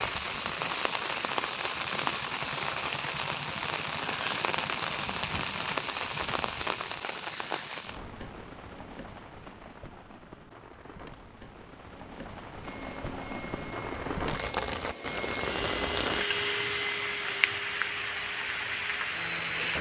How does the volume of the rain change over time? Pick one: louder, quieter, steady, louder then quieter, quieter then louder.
quieter then louder.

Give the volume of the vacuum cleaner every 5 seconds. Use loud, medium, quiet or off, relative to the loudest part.
off, off, medium, loud.